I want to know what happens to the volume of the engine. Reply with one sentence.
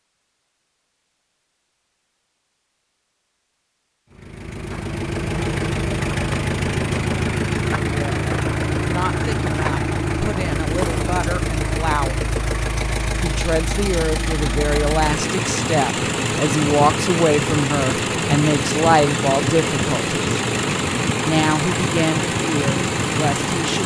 The loudness of the engine stays about the same.